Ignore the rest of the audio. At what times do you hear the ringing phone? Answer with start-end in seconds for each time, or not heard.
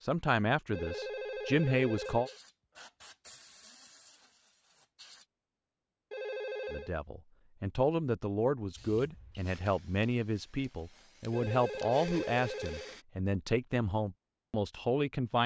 0.7-2.4, 6.1-7.0, 11.3-13.0.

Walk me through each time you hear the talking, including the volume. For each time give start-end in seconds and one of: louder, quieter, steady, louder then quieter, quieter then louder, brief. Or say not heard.
0.0-2.3 brief
6.7-15.4 steady.